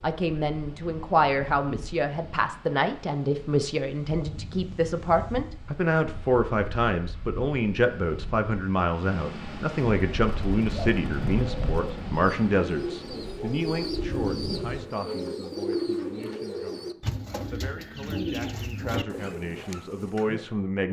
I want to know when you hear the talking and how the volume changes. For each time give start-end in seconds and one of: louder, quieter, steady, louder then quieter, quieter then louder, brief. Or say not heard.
0.0-20.8 quieter.